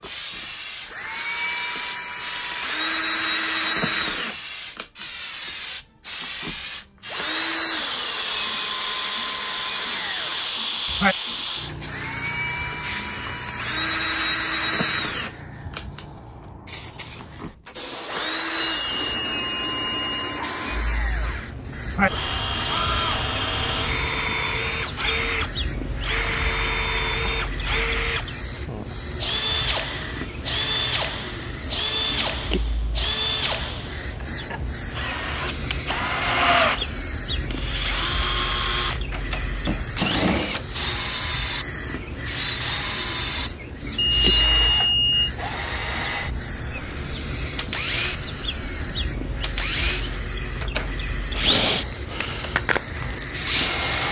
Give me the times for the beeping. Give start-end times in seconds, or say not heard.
18.6-20.4, 44.0-45.3.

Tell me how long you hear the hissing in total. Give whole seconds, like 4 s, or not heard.
54 s.